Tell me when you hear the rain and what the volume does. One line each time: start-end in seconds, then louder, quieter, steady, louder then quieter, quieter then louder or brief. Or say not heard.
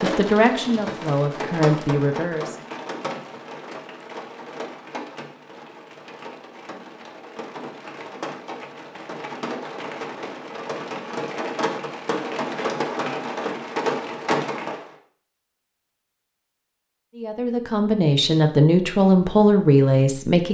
0.0-14.9 quieter then louder.